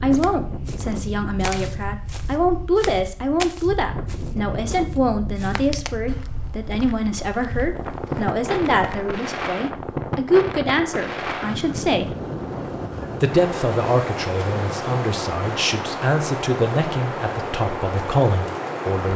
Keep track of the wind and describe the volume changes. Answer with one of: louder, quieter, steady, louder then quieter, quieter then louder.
louder.